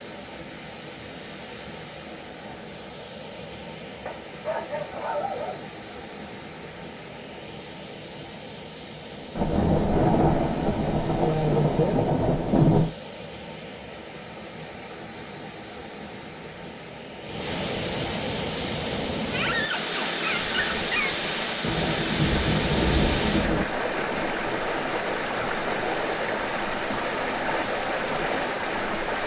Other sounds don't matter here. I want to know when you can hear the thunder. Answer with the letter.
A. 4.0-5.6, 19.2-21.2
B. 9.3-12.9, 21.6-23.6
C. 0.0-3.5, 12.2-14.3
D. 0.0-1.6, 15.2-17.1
B.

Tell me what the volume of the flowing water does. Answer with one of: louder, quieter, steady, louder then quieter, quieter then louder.
louder.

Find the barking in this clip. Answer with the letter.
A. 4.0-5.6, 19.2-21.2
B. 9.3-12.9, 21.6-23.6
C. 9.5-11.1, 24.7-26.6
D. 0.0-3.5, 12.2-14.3
A.